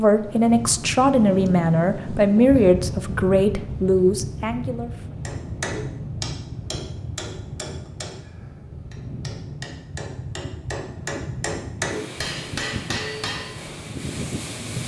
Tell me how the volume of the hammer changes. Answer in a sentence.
The loudness of the hammer goes down, then up.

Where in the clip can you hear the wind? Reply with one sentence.
The wind can be heard from 0.0 to 14.8 s.